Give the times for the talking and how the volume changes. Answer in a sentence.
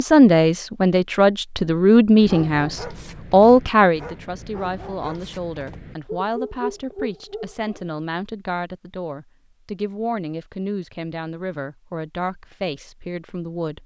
You can hear the talking from 0.0 to 13.8 s, getting quieter.